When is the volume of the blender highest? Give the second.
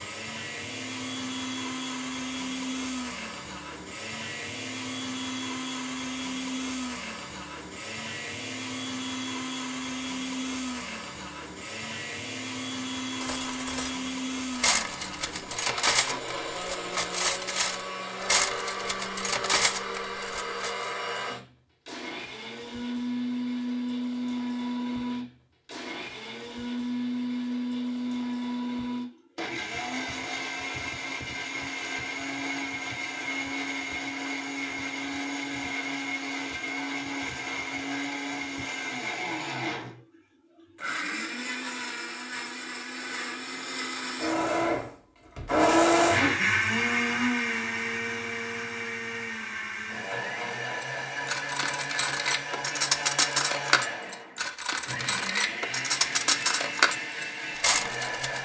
46 s.